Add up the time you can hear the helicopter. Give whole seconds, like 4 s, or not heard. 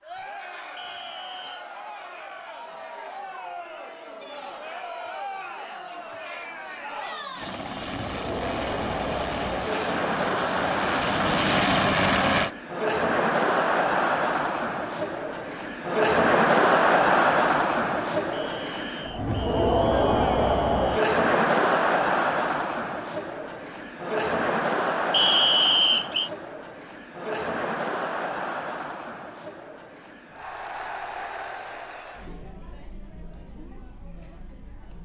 5 s.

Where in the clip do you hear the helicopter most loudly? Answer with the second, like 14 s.
12 s.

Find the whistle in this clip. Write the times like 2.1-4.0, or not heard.
0.8-1.6, 18.3-20.9, 25.1-26.3.